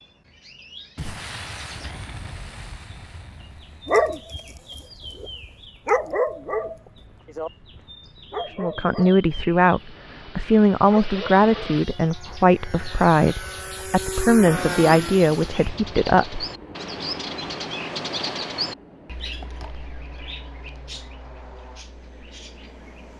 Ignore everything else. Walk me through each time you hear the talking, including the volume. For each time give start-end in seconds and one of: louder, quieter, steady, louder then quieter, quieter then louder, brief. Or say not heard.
8.4-16.4 steady.